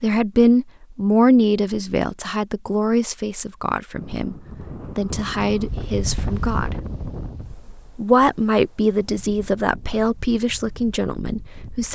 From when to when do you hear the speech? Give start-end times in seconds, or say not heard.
0.0-4.3, 5.0-6.8, 8.0-11.9.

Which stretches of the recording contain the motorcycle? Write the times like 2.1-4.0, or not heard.
not heard.